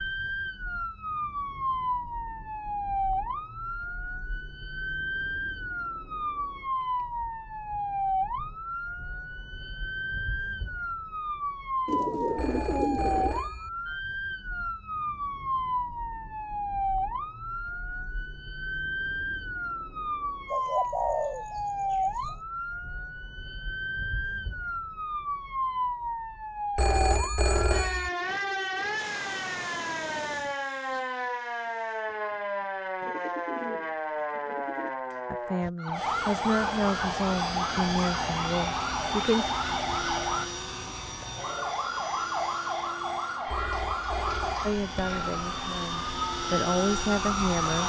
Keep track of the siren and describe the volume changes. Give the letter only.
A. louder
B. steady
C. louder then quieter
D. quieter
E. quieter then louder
B.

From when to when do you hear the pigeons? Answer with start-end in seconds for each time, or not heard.
11.8-13.4, 20.5-22.4, 33.0-34.9.